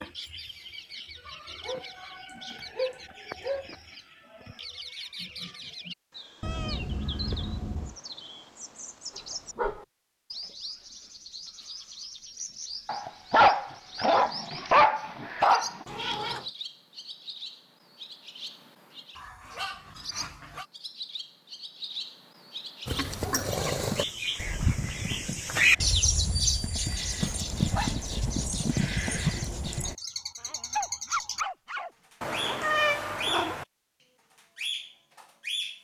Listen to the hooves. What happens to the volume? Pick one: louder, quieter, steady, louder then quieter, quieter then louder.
quieter then louder.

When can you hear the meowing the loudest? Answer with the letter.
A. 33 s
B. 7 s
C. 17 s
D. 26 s
A.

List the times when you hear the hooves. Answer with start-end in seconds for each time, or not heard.
22.9-29.9.